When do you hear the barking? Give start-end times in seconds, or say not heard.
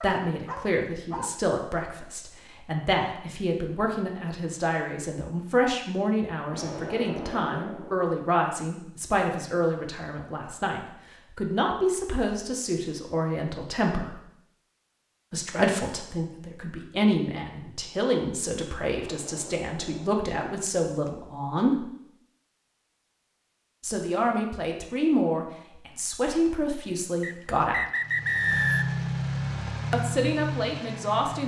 0.0-1.4.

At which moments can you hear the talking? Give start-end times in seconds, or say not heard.
0.0-14.2, 15.3-21.9, 23.8-27.9, 29.9-31.4.